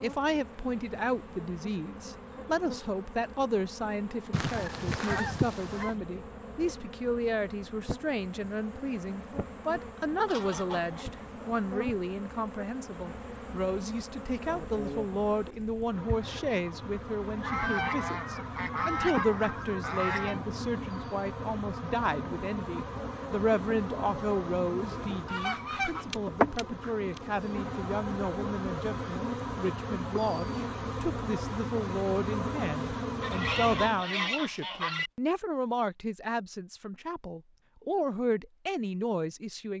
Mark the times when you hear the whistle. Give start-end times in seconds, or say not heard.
not heard.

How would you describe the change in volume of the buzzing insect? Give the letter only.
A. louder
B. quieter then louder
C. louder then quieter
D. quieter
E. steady
A.